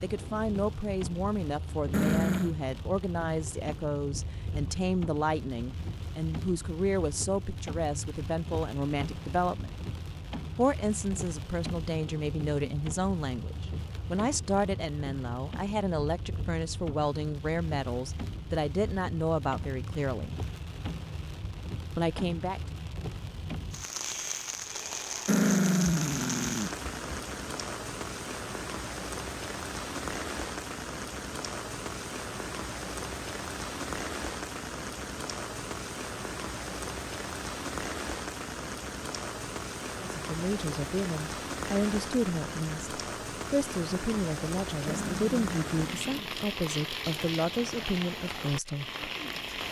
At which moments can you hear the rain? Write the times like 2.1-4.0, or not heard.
0.0-49.6.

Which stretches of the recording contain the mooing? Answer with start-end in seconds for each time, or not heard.
not heard.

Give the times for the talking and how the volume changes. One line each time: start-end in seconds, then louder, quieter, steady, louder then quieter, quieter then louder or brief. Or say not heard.
0.0-9.8 steady
10.6-20.4 steady
21.9-22.6 brief
40.0-48.9 steady.